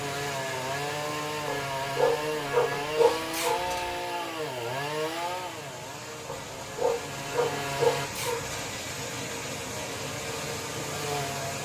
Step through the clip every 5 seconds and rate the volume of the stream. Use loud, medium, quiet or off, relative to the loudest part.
medium, loud, loud.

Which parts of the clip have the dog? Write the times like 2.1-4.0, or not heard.
1.4-4.0, 6.2-8.6.